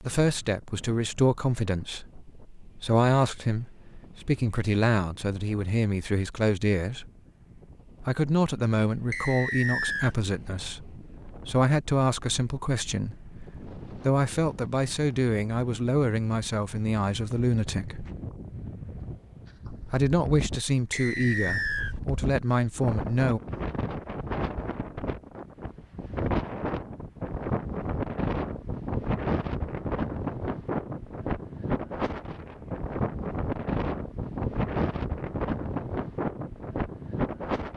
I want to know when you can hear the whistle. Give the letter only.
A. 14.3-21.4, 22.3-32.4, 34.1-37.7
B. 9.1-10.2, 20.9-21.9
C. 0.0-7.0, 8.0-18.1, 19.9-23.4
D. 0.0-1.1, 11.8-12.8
B.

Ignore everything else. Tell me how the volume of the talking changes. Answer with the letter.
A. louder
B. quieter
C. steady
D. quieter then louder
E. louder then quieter
C.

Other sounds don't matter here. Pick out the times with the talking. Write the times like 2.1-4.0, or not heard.
0.0-7.0, 8.0-18.1, 19.9-23.4.